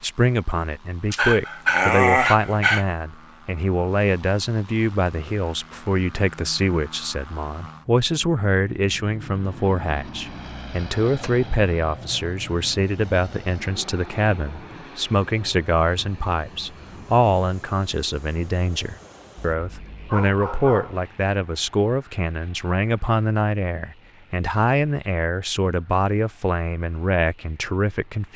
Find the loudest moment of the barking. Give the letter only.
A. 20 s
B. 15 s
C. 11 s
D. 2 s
D.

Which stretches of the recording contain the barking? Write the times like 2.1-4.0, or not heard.
1.1-2.9, 19.4-21.0.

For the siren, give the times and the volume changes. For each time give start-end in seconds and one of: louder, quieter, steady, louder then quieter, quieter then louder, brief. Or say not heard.
not heard.